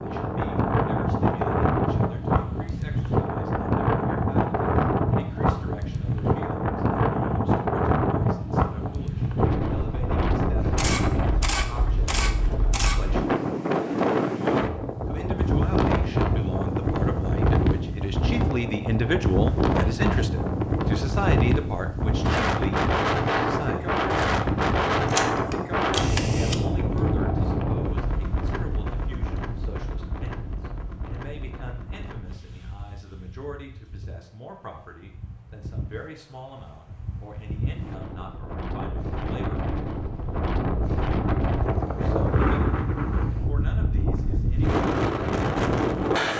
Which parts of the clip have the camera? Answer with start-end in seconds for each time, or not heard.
10.8-13.0, 25.1-26.6.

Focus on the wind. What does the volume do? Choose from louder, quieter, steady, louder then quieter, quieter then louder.
quieter then louder.